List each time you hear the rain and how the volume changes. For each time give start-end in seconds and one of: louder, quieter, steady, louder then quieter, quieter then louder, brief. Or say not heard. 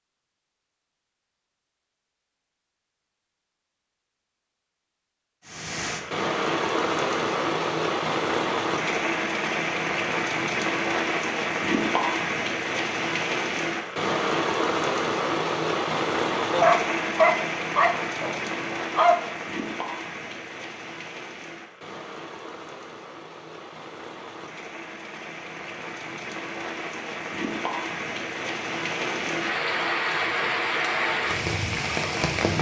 5.5-32.5 quieter then louder.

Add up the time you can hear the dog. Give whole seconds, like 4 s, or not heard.
3 s.